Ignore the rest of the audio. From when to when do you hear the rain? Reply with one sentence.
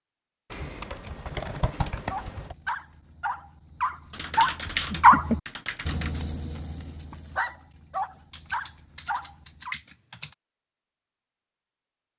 You can't hear the rain here.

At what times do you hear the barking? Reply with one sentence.
You can hear the barking from 2.0 to 9.8 s.